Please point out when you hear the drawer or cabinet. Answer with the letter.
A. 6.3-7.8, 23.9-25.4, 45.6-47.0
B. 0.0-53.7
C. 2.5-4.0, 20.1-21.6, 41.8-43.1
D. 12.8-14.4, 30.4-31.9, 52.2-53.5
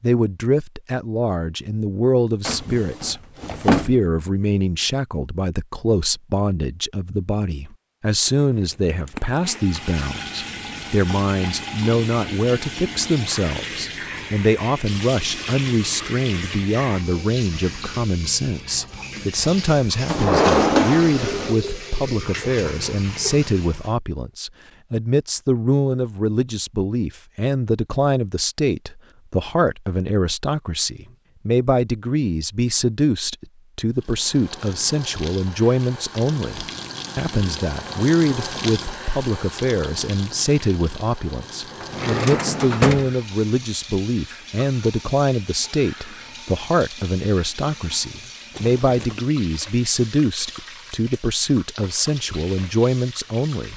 C.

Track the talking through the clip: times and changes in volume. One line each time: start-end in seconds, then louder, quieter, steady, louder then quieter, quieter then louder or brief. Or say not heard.
0.0-53.7 steady.